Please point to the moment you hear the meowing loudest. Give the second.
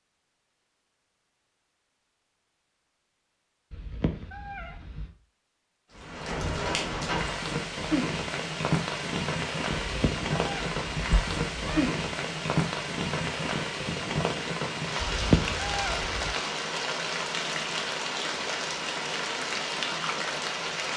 15 s.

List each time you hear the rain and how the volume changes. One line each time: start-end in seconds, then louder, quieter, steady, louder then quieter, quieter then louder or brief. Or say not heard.
5.9-20.9 steady.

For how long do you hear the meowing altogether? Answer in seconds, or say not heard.
5 s.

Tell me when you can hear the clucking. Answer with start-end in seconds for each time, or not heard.
not heard.